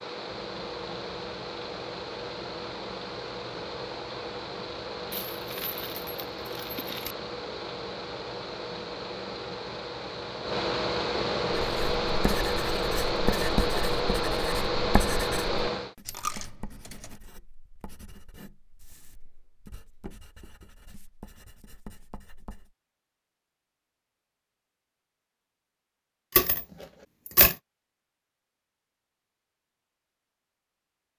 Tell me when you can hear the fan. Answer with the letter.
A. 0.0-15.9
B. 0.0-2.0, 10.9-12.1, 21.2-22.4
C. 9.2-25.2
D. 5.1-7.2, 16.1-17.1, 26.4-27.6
A.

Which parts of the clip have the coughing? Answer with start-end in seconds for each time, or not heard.
not heard.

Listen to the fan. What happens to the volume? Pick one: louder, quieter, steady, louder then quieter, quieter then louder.
louder.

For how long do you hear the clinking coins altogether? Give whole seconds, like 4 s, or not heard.
4 s.